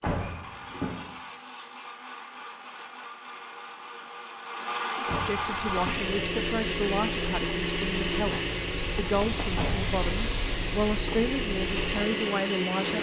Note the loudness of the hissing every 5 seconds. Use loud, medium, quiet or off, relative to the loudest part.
off, loud, loud.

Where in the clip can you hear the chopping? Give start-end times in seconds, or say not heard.
not heard.